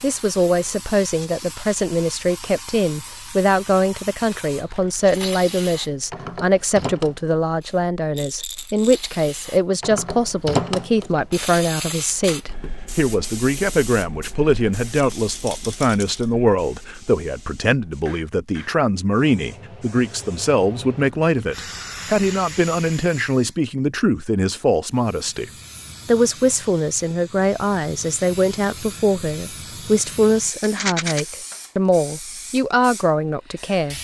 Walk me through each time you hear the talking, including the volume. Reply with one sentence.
The talking can be heard from 0.0 to 33.9 s, at a steady volume.